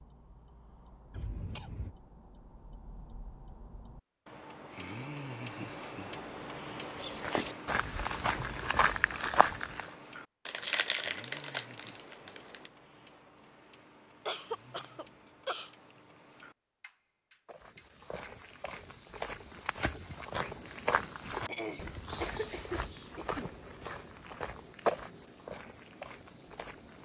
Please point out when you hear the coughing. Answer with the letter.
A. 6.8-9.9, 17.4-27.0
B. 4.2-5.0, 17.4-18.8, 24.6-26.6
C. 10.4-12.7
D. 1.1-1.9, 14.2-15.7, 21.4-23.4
D.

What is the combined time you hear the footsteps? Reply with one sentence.
The footsteps can be heard for 13 seconds in total.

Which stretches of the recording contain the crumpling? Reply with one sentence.
The crumpling can be heard from 10.4 to 12.7 s.